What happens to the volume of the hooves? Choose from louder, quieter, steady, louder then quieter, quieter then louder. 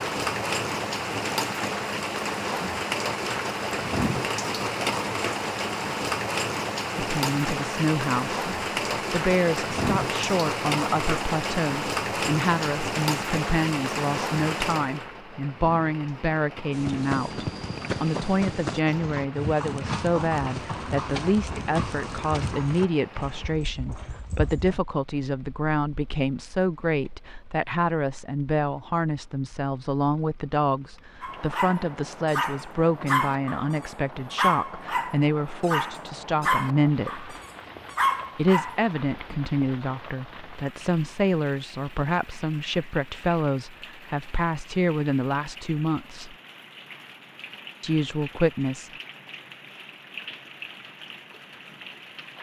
quieter.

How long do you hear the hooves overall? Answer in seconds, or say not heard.
8 s.